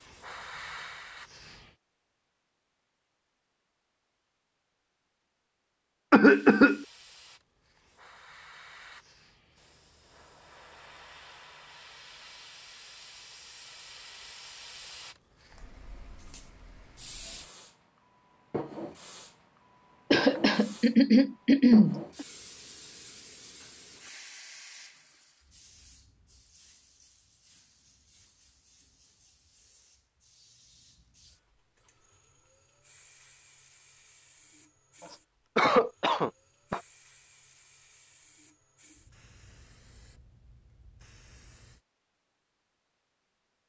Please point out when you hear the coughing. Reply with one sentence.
You can hear the coughing from 6.1 to 6.8 s, from 20.1 to 22.2 s and from 35.1 to 36.8 s.